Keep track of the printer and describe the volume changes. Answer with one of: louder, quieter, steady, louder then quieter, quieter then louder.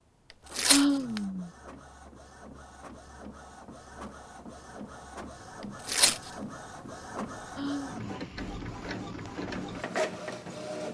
louder.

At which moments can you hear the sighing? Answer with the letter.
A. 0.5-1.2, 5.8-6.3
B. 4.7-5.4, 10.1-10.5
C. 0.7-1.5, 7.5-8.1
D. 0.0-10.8
C.